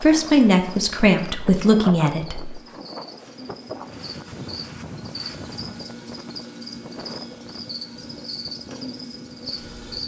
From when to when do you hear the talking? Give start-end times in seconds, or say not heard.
0.0-2.6.